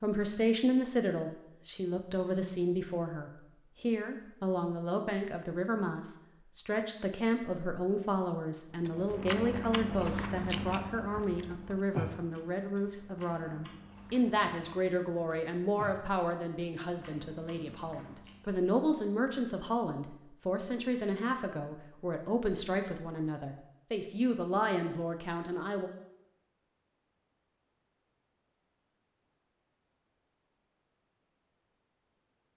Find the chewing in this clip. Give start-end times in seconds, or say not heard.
8.8-18.6.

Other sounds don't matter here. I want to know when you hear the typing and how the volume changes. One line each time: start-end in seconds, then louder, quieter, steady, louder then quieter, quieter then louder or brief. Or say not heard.
not heard.